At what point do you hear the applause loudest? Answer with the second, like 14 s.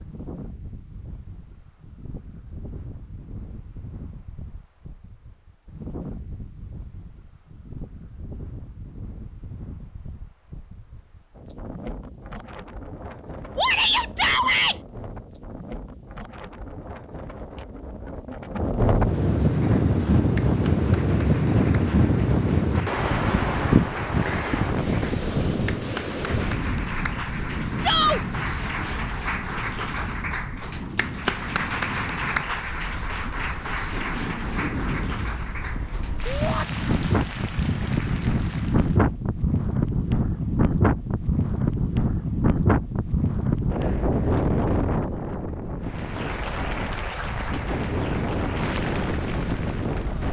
32 s.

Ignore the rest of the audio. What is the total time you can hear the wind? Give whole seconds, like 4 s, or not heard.
50 s.